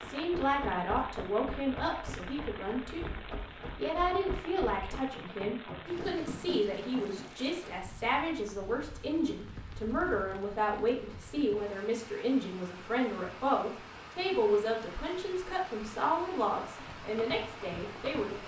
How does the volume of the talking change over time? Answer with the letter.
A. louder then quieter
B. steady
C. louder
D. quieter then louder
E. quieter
B.